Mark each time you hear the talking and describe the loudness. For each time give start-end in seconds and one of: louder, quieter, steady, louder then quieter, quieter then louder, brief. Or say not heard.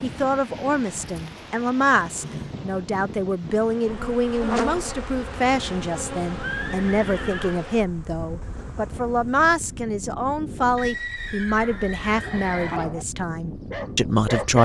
0.0-14.6 steady.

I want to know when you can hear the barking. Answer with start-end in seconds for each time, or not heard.
12.1-14.6.